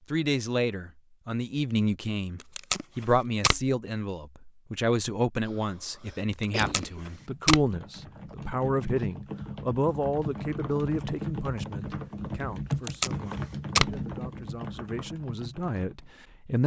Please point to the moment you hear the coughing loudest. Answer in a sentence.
The loudest moment of the coughing is at 7 seconds.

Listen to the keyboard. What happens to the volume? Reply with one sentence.
The volume of the keyboard goes up, then down.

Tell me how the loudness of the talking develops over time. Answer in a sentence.
The volume of the talking goes down.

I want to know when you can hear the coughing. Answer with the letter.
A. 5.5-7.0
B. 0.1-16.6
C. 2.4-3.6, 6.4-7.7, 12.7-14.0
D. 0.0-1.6
A.